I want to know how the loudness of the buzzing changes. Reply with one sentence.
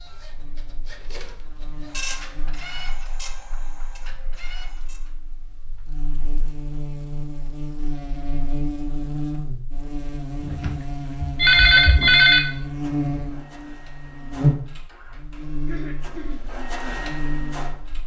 The loudness of the buzzing goes up.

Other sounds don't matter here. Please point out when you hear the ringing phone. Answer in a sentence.
You can hear the ringing phone from 10.4 to 12.4 s.